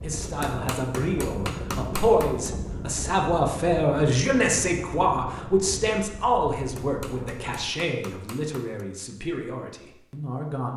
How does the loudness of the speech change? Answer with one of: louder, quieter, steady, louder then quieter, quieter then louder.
quieter.